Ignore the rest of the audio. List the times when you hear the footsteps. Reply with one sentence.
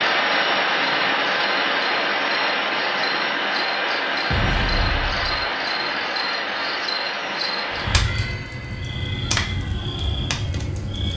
The footsteps can't be heard in this clip.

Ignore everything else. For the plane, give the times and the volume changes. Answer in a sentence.
The plane can be heard from 0.0 to 11.1 s, getting quieter.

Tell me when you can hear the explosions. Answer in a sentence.
You can hear the explosions from 4.3 to 5.5 s.